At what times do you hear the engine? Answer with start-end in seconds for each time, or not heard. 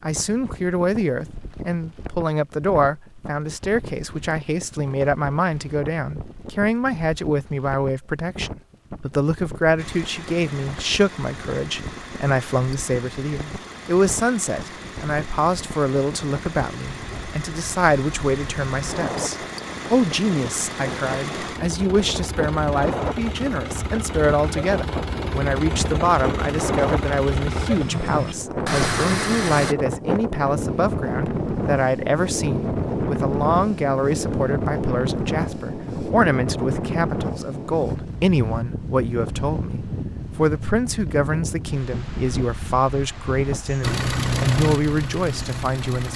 9.8-29.8, 43.8-46.1.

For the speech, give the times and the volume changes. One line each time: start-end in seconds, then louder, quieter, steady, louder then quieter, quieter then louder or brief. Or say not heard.
0.0-46.1 steady.